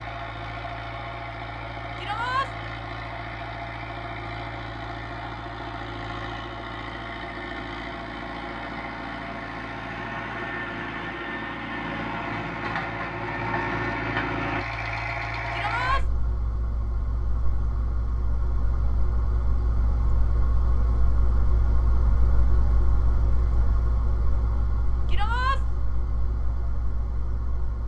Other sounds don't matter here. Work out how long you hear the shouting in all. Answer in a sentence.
The shouting can be heard for 2 seconds in total.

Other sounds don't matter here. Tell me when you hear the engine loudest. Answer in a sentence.
The loudest moment of the engine is at 14 seconds.